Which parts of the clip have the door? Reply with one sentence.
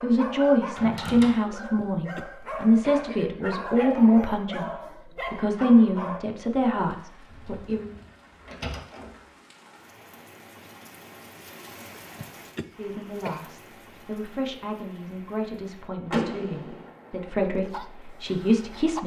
The door can be heard from 0.8 to 1.4 s, from 7.3 to 9.1 s and from 16.1 to 16.9 s.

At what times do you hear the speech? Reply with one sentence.
The speech can be heard from 0.0 to 7.9 s and from 12.8 to 19.0 s.